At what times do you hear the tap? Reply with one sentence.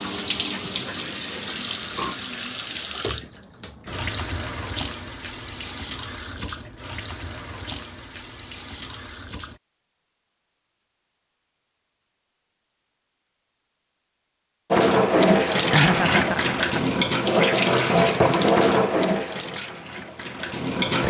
The tap can be heard from 0.0 to 9.6 s and from 14.7 to 21.0 s.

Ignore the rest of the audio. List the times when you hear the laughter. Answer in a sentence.
You can hear the laughter from 15.7 to 16.9 s.